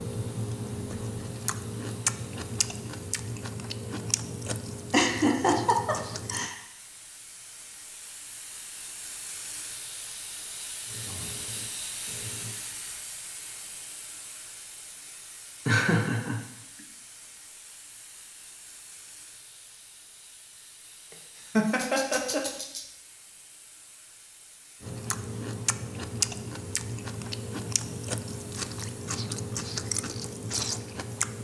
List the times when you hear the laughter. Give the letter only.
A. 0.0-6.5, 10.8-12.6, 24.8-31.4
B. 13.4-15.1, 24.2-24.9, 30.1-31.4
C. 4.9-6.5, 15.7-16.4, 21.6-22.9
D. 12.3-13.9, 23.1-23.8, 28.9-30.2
C.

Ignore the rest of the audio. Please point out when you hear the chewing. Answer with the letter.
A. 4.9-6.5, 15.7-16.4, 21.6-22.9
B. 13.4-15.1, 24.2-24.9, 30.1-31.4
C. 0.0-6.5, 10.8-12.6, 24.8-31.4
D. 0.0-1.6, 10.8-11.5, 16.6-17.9
C.